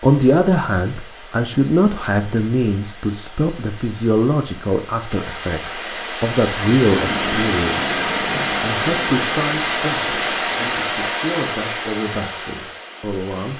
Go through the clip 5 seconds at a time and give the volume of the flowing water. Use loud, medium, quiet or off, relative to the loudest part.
quiet, loud, loud.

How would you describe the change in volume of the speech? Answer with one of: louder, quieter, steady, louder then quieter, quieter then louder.
quieter.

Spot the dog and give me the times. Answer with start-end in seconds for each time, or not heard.
not heard.